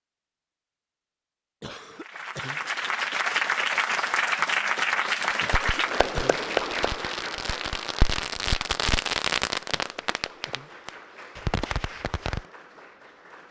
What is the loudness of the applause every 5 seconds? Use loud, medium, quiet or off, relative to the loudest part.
loud, loud, quiet.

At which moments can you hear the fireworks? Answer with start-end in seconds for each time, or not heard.
4.8-12.4.